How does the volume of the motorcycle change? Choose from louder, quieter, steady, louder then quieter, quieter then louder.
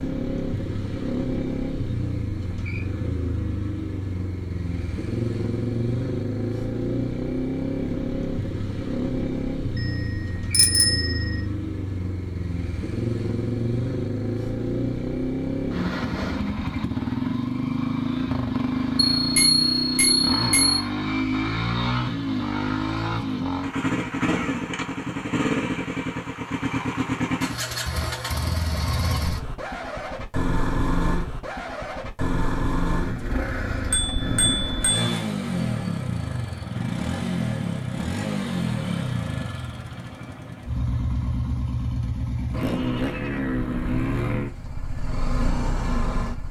steady.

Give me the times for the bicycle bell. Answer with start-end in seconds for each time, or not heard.
10.5-11.2, 19.1-20.9, 33.9-35.1.